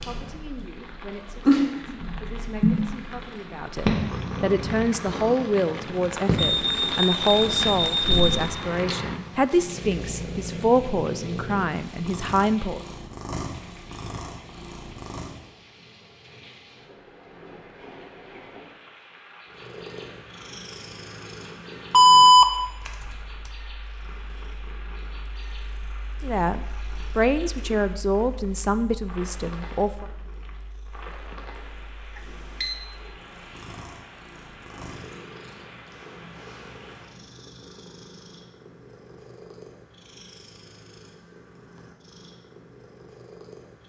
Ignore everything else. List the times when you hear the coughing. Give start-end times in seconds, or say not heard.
not heard.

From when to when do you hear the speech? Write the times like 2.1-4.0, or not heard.
0.0-12.8, 26.2-30.1.